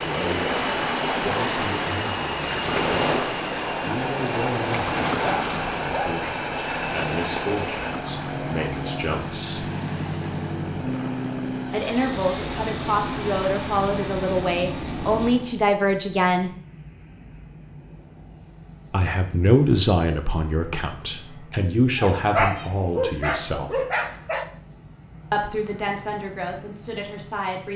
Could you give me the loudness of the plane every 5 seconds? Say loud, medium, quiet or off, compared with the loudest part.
loud, loud, loud, medium, quiet, quiet.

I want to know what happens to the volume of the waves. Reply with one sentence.
The loudness of the waves goes down.